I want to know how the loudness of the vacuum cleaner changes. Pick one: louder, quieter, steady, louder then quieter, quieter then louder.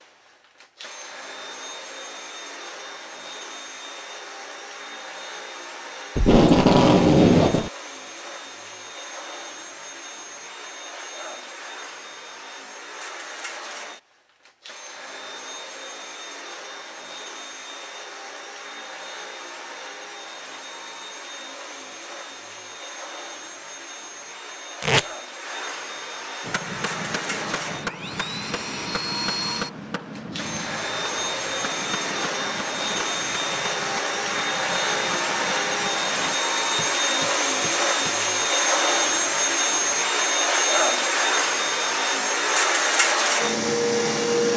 louder.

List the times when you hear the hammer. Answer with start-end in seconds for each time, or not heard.
26.4-38.1.